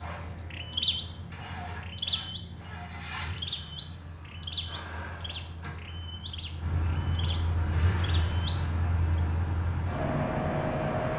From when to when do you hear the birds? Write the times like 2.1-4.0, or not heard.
0.0-9.2.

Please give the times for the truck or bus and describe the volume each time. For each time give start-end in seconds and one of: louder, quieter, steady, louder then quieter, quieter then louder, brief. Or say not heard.
0.0-11.1 louder.